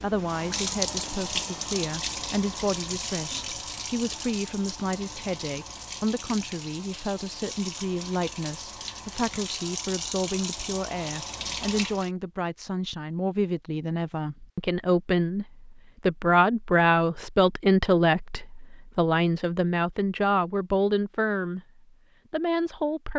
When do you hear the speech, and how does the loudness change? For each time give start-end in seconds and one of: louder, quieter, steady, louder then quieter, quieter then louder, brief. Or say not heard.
0.0-21.6 louder
22.3-23.1 brief.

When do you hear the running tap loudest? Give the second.
1 s.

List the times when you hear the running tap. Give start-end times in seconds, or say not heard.
0.0-12.1.